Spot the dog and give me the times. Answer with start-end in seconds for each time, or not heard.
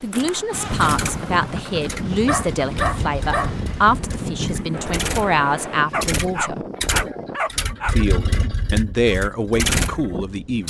2.2-3.5, 5.9-8.0.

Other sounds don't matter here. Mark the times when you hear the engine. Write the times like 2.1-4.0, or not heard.
0.0-10.6.